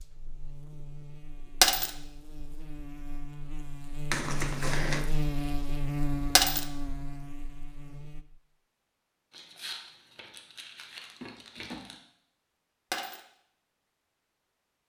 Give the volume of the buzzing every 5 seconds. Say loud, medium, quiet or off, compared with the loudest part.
medium, loud, off.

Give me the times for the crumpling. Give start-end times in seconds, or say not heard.
4.1-5.0, 9.3-12.0.